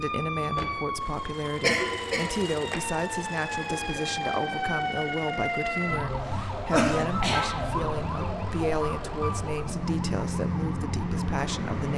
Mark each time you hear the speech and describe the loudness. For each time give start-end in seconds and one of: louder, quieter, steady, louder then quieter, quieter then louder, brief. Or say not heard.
0.0-11.9 steady.